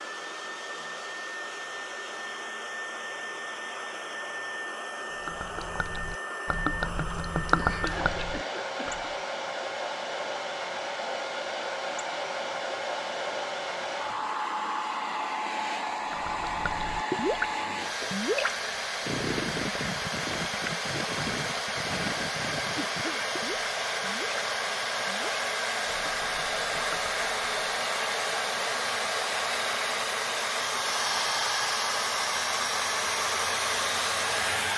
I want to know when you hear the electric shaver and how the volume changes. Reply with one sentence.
The electric shaver can't be heard in this clip.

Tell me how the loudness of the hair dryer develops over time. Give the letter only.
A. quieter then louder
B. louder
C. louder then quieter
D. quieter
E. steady
B.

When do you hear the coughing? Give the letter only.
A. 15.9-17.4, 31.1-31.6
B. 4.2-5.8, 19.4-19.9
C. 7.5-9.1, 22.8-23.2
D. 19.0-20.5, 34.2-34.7
C.